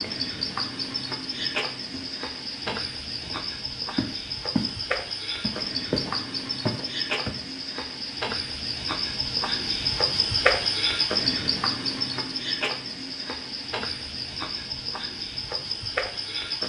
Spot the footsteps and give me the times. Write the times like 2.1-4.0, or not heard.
1.4-4.8, 5.4-7.4.